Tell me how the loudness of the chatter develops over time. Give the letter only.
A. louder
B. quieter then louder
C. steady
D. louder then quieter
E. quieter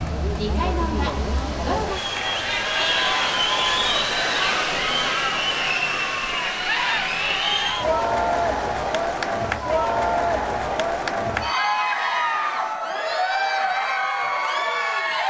C.